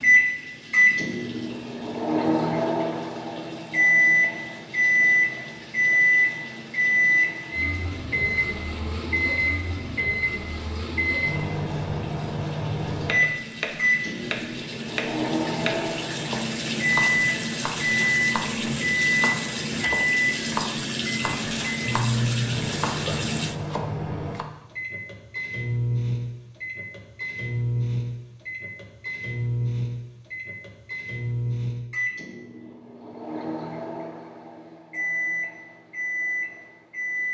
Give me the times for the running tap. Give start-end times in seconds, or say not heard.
0.0-23.6.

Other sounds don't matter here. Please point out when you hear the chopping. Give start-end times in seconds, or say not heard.
13.0-24.5.